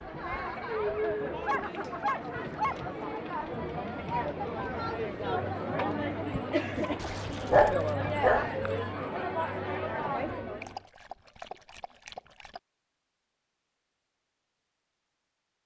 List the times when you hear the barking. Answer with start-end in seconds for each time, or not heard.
1.4-3.2, 7.0-8.5, 10.6-12.6.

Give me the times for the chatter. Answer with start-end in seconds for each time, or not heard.
0.0-10.8.